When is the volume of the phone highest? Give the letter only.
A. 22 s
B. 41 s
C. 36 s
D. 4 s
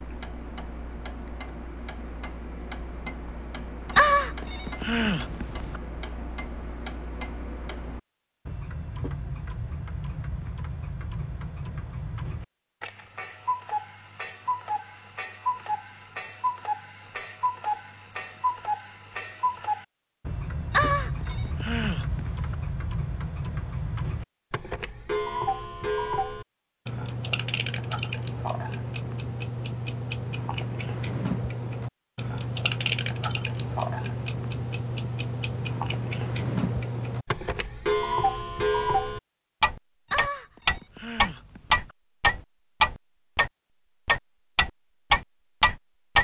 D.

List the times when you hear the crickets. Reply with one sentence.
You can't hear the crickets here.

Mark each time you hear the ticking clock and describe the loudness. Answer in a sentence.
The ticking clock can be heard from 0.0 to 46.1 s, getting louder.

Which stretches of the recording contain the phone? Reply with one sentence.
You can hear the phone from 4.0 to 5.8 s, from 20.7 to 22.6 s and from 40.1 to 42.0 s.